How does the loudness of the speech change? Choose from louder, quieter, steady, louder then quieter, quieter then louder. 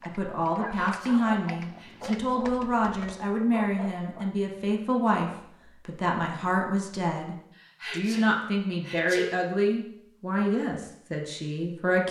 steady.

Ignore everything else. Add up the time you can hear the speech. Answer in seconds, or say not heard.
12 s.